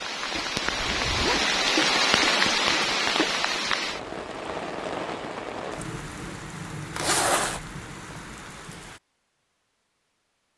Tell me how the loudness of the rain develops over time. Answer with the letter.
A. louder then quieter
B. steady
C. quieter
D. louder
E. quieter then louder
C.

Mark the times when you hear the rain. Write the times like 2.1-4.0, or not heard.
0.0-9.0.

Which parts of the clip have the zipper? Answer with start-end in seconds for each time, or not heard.
0.7-1.5, 7.0-7.6.